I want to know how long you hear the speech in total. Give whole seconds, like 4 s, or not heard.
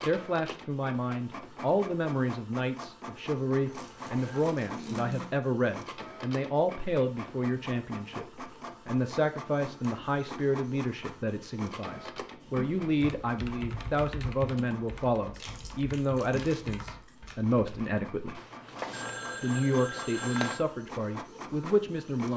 21 s.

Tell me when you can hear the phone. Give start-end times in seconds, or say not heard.
3.6-4.5, 18.4-20.6.